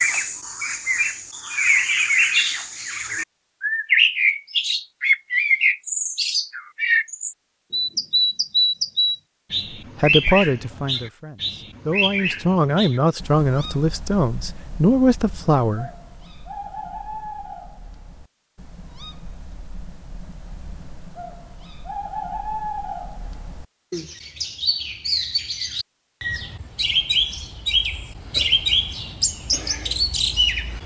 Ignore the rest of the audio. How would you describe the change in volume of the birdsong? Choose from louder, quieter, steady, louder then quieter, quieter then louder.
quieter then louder.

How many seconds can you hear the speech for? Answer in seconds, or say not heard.
6 s.